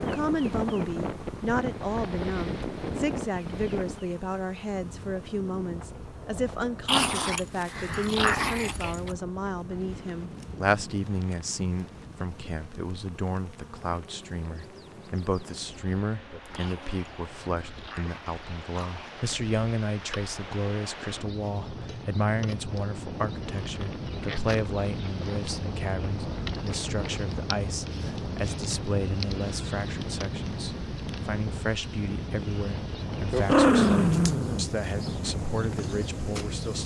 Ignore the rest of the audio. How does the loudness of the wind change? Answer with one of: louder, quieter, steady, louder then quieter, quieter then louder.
quieter then louder.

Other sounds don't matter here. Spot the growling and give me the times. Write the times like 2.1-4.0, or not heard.
6.8-9.1, 16.6-19.1, 33.4-35.1.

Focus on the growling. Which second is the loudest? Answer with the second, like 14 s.
34 s.